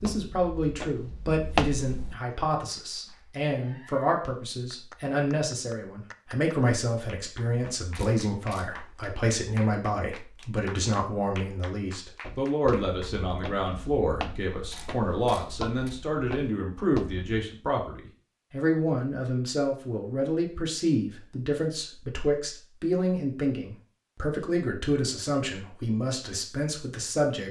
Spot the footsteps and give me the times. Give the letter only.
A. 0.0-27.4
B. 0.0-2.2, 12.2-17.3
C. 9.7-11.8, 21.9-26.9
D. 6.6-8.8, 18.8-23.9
B.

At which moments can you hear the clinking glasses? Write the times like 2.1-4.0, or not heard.
not heard.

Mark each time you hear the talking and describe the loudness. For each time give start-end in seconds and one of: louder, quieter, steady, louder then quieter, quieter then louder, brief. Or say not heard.
0.0-27.4 steady.